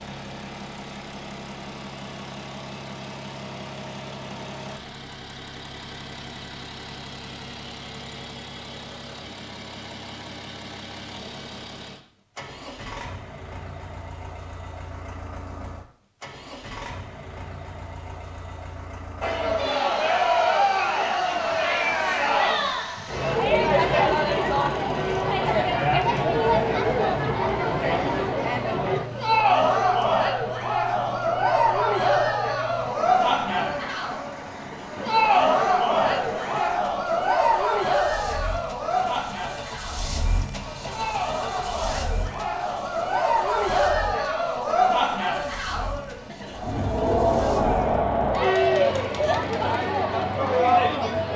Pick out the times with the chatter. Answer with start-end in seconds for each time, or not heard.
19.2-51.3.